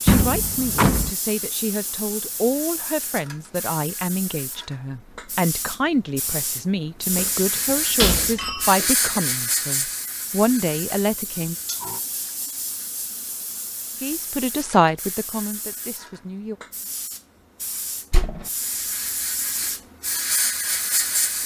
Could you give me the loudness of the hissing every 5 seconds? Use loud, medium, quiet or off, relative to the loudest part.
medium, loud, medium, medium, loud.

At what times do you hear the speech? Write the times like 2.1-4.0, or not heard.
0.1-11.6, 14.0-16.6.